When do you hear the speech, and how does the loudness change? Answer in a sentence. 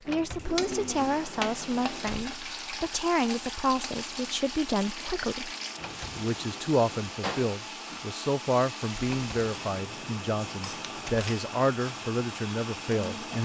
The speech can be heard from 0.1 to 13.4 s, at a steady volume.